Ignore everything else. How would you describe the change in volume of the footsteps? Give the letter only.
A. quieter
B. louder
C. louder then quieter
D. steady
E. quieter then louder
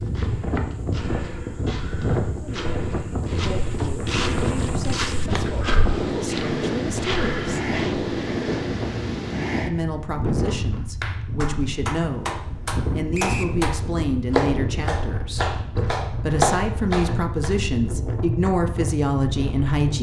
B.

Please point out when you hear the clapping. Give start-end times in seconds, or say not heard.
10.8-17.5.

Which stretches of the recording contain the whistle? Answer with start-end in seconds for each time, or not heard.
13.1-13.6.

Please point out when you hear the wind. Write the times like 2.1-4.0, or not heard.
0.0-19.9.